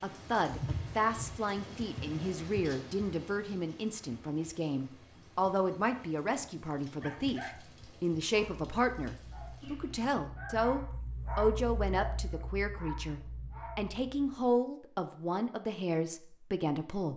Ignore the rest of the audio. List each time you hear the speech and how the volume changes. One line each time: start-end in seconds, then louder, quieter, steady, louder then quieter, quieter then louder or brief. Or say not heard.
0.0-17.1 steady.